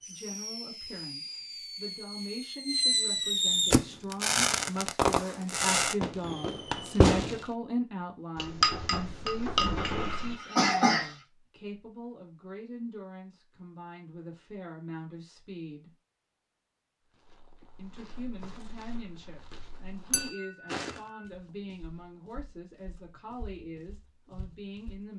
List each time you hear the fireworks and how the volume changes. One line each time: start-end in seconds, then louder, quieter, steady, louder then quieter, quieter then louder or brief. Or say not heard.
0.0-7.5 louder.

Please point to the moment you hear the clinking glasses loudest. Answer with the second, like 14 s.
9 s.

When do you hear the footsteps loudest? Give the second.
21 s.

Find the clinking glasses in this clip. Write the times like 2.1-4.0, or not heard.
8.3-10.3, 20.1-20.8.